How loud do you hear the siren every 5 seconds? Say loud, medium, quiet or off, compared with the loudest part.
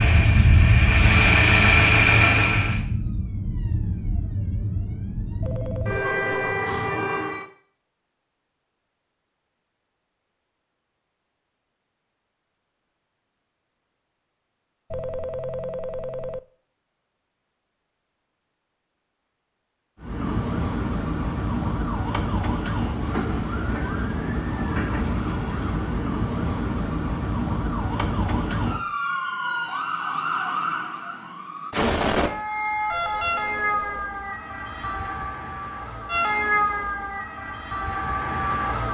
loud, loud, off, off, loud, loud, loud, loud.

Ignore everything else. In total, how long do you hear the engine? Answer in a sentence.
You can hear the engine for 3 seconds altogether.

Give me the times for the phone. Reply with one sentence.
You can hear the phone from 5.4 to 6.5 s, from 14.9 to 16.4 s and from 32.9 to 34.1 s.